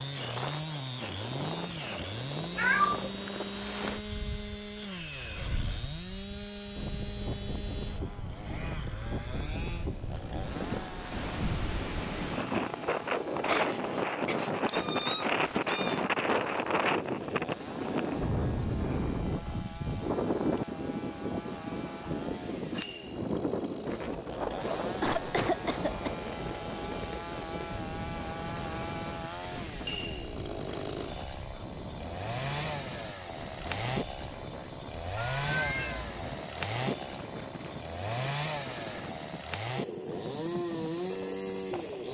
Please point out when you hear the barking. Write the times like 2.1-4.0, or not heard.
not heard.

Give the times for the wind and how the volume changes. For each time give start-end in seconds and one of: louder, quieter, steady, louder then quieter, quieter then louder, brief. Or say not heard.
0.0-42.1 louder then quieter.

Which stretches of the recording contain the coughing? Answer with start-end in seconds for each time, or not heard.
13.4-14.7, 25.0-26.1.